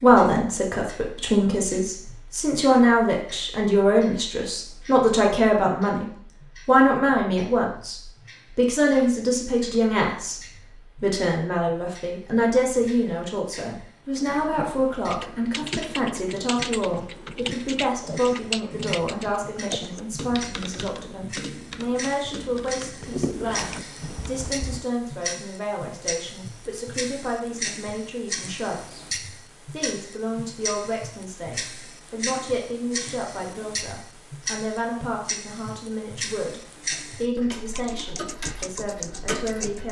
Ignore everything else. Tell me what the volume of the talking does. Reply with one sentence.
The loudness of the talking goes down.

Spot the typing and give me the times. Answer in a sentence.
The typing can be heard from 14.2 to 24.9 s and from 37.8 to 39.8 s.